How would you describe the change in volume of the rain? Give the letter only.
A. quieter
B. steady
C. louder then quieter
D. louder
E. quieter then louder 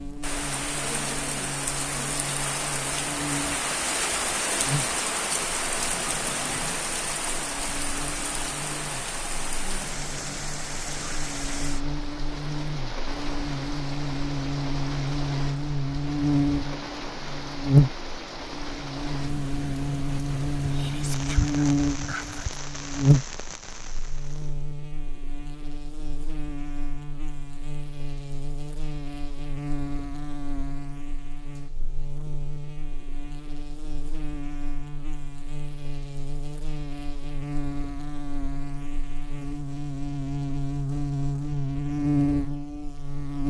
A.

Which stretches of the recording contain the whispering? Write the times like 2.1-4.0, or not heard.
20.6-22.5.